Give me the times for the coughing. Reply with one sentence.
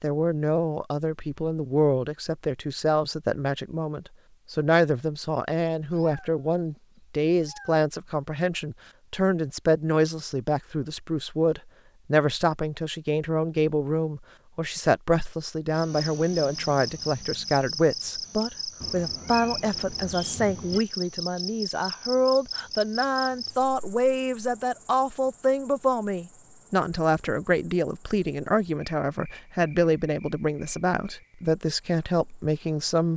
The coughing can't be heard in this clip.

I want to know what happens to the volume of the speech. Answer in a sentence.
The volume of the speech stays about the same.